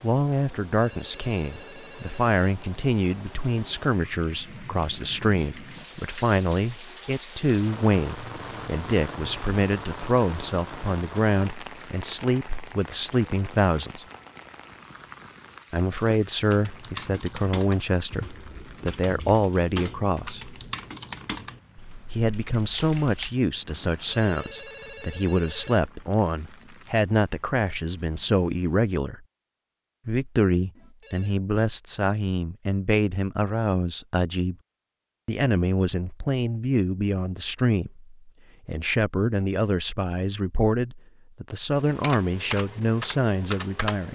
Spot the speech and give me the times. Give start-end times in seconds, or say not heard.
0.0-14.1, 15.7-20.6, 22.1-29.2, 30.1-34.5, 35.2-44.1.